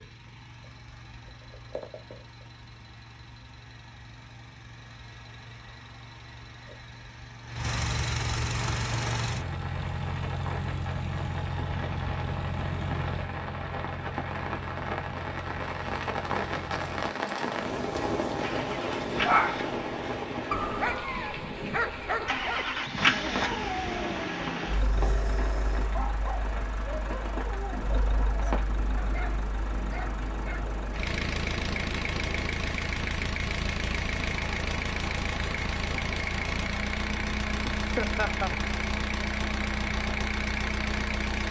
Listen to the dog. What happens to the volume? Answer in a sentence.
The loudness of the dog goes down.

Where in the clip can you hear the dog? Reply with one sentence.
The dog can be heard from 19.2 to 30.7 s.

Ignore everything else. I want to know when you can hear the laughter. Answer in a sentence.
You can hear the laughter from 38.0 to 38.5 s.